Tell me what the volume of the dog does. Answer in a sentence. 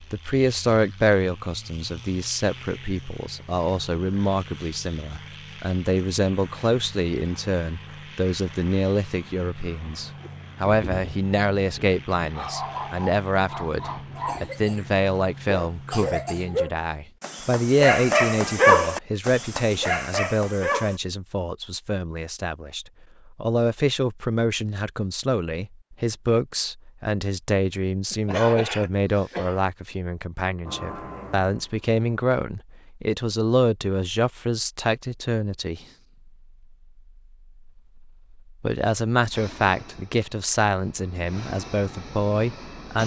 The loudness of the dog goes up, then down.